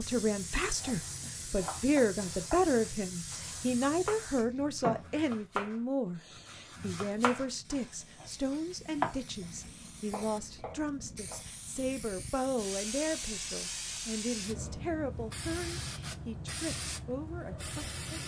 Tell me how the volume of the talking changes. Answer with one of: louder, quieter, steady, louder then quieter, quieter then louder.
quieter.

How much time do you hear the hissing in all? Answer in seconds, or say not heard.
18 s.